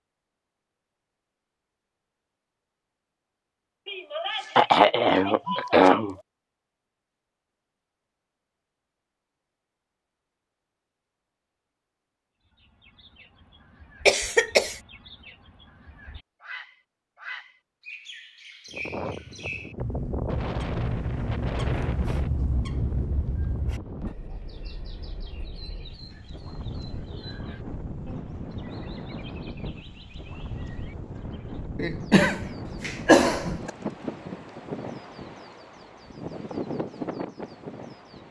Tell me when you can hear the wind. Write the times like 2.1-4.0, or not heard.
18.7-38.2.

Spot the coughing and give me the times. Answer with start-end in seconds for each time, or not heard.
3.9-6.2, 14.1-14.8, 31.8-33.7.